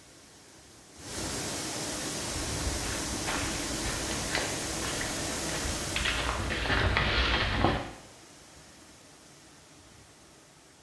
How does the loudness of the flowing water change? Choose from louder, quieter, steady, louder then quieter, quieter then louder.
quieter.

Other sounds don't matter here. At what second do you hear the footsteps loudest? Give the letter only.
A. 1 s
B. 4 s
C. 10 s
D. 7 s
D.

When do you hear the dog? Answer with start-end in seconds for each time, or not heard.
not heard.